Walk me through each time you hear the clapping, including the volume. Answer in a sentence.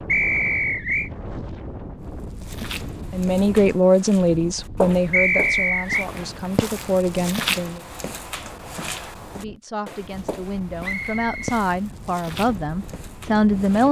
The clapping can't be heard in this clip.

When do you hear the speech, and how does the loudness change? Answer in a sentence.
The speech can be heard from 3.1 to 7.8 s, getting quieter then louder; and from 9.3 to 13.8 s, getting louder.